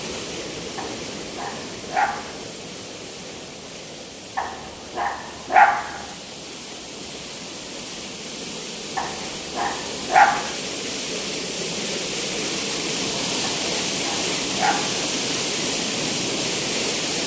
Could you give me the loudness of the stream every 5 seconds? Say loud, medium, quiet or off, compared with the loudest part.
medium, medium, loud, loud.